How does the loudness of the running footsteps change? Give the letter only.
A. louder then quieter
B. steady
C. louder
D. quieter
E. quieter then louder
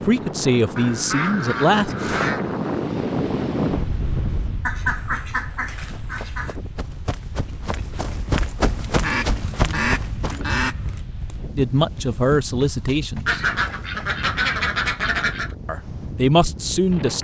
A.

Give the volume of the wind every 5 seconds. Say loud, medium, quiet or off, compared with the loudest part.
loud, quiet, medium, medium.